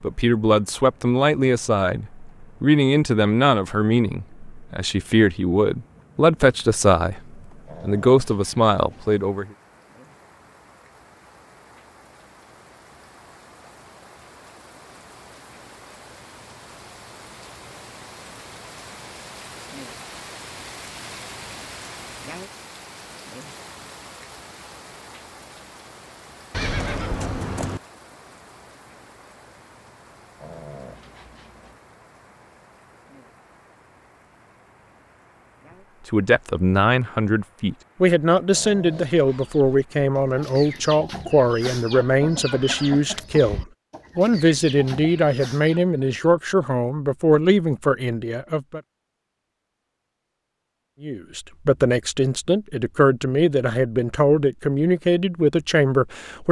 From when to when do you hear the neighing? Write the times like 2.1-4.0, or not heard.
26.5-27.8.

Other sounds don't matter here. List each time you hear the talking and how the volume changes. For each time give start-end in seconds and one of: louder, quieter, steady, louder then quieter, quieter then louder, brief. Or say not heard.
0.0-9.4 steady
36.1-48.8 steady
51.0-56.4 steady.